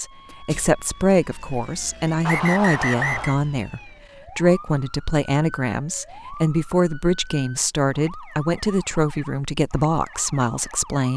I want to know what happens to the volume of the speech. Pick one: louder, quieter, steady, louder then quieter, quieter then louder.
steady.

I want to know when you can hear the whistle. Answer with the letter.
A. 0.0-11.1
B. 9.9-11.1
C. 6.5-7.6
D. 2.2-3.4
D.